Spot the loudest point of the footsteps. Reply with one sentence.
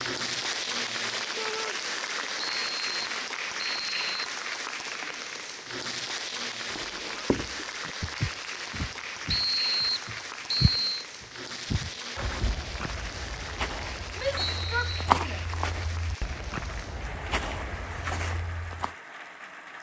The volume of the footsteps peaks at 15 seconds.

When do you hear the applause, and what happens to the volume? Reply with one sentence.
You can hear the applause from 0.0 to 19.7 s, getting quieter.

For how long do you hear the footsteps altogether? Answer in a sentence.
You can hear the footsteps for 12 seconds altogether.